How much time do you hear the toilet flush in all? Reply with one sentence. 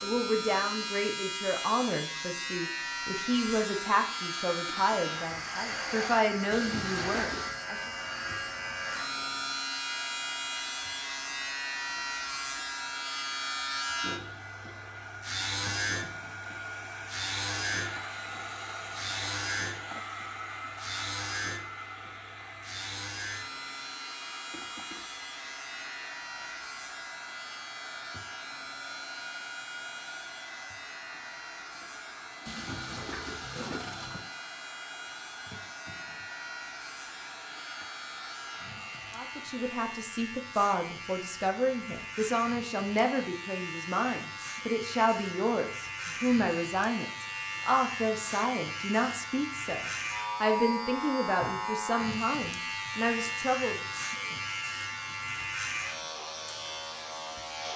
You can hear the toilet flush for 3 seconds altogether.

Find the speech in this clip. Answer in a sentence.
The speech can be heard from 0.0 to 7.8 s and from 39.1 to 53.8 s.